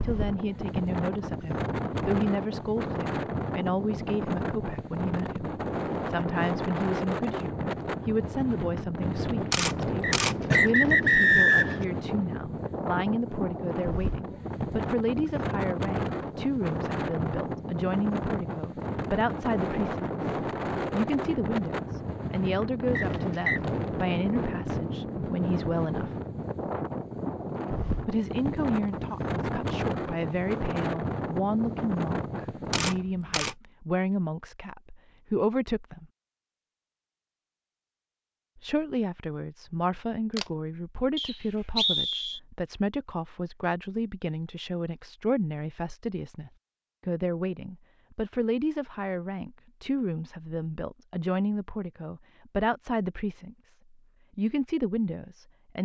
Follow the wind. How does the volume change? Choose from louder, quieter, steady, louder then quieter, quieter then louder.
steady.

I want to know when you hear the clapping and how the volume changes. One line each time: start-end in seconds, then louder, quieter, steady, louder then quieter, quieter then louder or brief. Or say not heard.
not heard.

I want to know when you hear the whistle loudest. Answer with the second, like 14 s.
11 s.